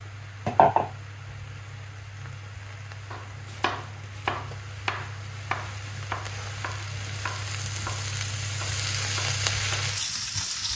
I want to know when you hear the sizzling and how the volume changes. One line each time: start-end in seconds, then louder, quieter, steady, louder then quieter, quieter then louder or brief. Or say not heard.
0.0-10.7 quieter then louder.